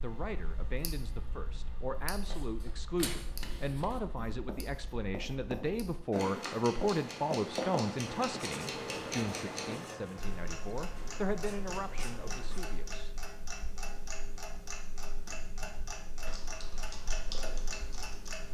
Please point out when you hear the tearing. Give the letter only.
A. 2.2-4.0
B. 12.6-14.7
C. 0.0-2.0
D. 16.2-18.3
A.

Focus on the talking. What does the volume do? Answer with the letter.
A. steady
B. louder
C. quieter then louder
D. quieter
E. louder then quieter
E.